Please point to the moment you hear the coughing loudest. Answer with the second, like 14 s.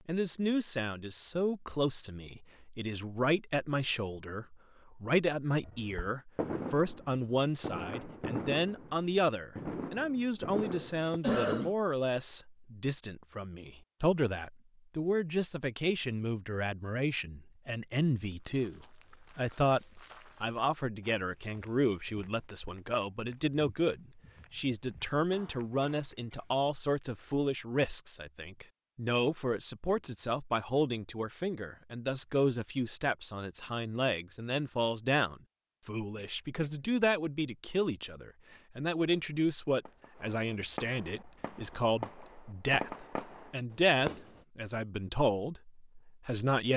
11 s.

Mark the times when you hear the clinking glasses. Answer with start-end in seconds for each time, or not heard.
not heard.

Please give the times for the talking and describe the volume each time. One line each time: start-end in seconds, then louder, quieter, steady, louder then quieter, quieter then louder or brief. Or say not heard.
0.1-46.7 steady.